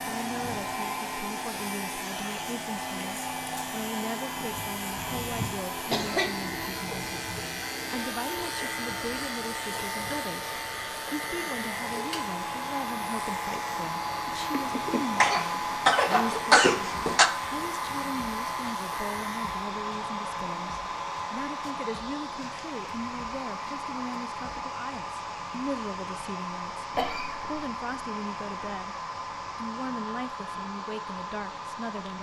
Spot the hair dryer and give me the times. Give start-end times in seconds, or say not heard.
0.0-32.1.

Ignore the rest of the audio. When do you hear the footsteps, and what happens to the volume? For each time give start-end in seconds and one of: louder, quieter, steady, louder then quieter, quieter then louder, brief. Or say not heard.
not heard.